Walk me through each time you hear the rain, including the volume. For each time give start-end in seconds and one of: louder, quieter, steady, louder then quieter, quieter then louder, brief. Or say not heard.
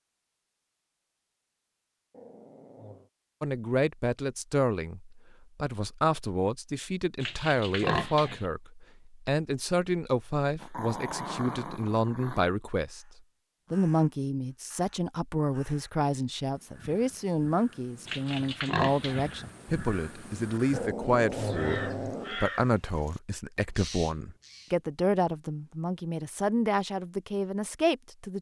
not heard.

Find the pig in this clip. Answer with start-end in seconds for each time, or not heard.
7.2-8.4, 18.1-19.4.